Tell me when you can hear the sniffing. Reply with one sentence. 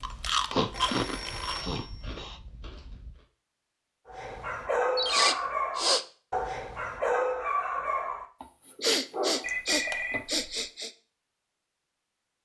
You can hear the sniffing from 0.5 to 2.4 s, from 5.0 to 6.0 s and from 8.8 to 10.9 s.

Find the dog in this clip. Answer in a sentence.
The dog can be heard from 4.0 to 10.2 s.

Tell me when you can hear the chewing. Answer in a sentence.
You can hear the chewing from 0.0 to 3.2 s.